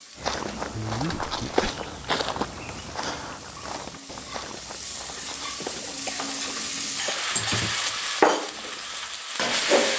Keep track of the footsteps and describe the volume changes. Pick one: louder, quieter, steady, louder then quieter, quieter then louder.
quieter.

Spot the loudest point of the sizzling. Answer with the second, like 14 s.
8 s.